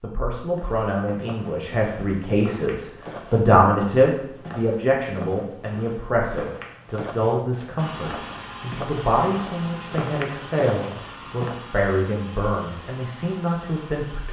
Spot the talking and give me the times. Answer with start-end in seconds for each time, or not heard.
0.0-14.2.